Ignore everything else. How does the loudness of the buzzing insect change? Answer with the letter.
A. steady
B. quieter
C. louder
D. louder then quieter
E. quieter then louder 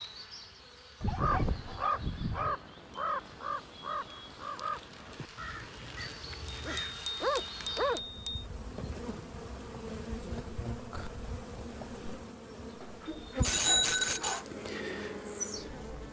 C.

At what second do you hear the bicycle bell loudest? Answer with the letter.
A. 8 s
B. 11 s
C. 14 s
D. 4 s
C.